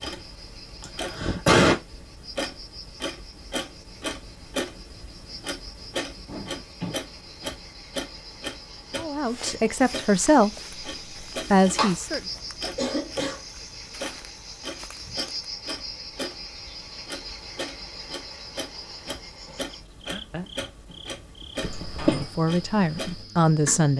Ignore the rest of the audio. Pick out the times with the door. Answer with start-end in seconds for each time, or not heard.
6.2-7.0, 20.4-22.2.